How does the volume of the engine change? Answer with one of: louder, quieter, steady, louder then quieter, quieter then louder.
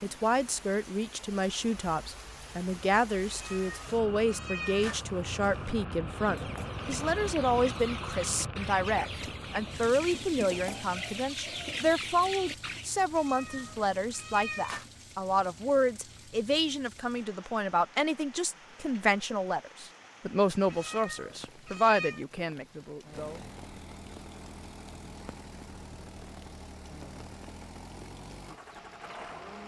steady.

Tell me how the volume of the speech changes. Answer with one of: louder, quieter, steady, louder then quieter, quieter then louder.
steady.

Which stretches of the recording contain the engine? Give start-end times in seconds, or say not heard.
23.1-29.6.